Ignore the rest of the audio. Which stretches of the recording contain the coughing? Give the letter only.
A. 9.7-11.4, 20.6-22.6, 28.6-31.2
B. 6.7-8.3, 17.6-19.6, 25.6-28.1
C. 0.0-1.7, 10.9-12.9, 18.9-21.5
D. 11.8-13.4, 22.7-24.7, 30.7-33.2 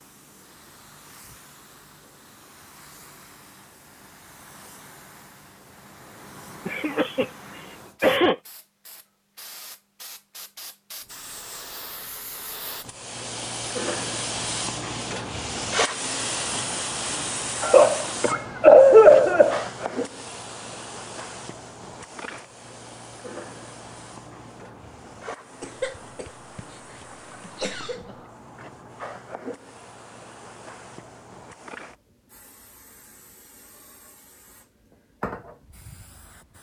B.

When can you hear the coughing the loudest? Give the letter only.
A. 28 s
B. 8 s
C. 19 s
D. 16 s
C.